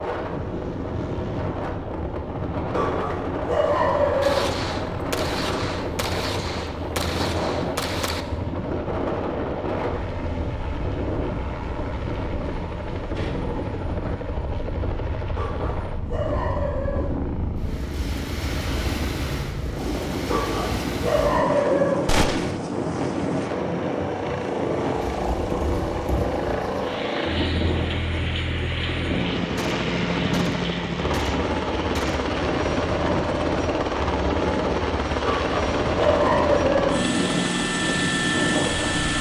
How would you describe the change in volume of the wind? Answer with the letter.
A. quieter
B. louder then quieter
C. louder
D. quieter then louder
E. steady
E.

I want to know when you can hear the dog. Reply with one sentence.
The dog can be heard from 2.7 to 4.5 s, from 15.3 to 17.1 s, from 20.2 to 22.1 s and from 35.2 to 37.0 s.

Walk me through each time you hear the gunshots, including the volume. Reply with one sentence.
You can hear the gunshots from 4.2 to 8.2 s, at a steady volume; briefly from 22.1 to 22.6 s; and briefly from 29.6 to 32.3 s.